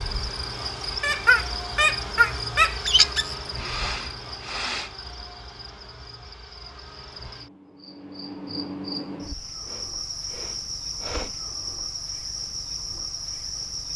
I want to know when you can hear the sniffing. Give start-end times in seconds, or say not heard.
3.5-5.0, 9.7-11.3.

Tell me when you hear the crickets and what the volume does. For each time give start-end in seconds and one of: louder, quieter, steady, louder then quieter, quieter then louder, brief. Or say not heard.
0.0-13.9 quieter then louder.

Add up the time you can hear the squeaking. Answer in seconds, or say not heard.
2 s.